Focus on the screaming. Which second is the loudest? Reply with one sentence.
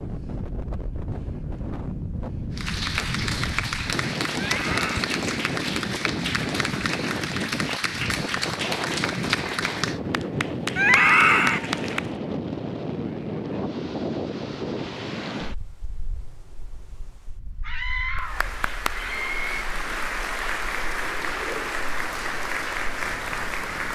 The volume of the screaming peaks at 11 seconds.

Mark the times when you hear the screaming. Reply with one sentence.
You can hear the screaming from 4.3 to 5.0 s, from 10.8 to 11.6 s and from 17.6 to 19.6 s.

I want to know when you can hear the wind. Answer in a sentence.
You can hear the wind from 0.0 to 23.9 s.